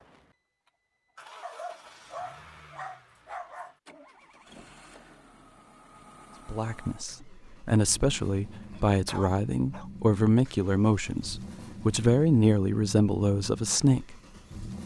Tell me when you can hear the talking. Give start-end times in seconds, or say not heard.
6.5-14.2.